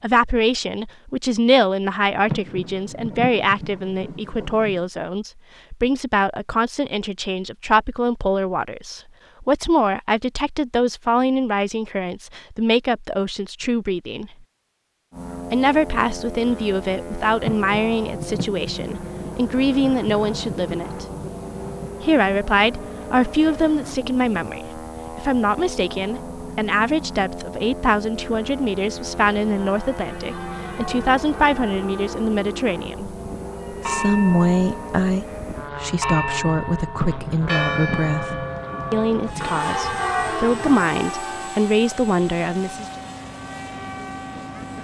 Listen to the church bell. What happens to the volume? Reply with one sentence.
The loudness of the church bell goes up.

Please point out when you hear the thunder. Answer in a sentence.
The thunder can be heard from 2.2 to 4.8 s, from 17.4 to 21.9 s and from 37.0 to 39.6 s.